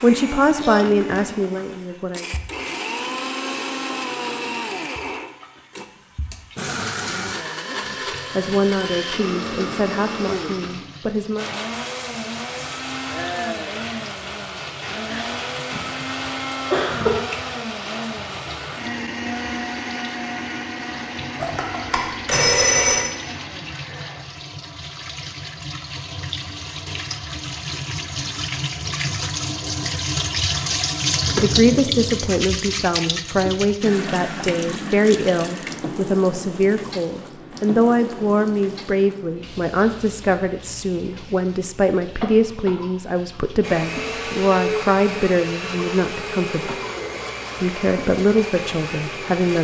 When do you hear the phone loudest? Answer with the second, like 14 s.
23 s.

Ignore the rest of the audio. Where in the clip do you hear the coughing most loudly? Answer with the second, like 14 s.
17 s.